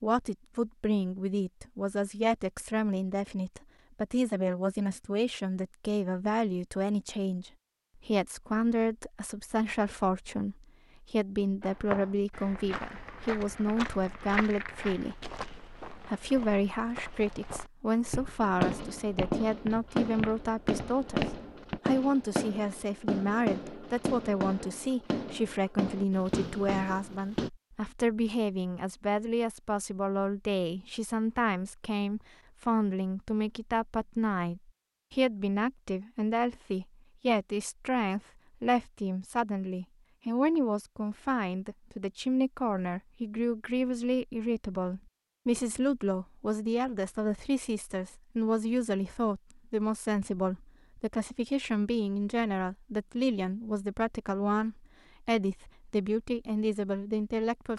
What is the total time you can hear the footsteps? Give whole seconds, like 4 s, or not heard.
10 s.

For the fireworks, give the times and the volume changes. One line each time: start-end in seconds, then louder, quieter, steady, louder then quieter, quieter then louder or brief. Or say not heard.
18.4-27.5 steady.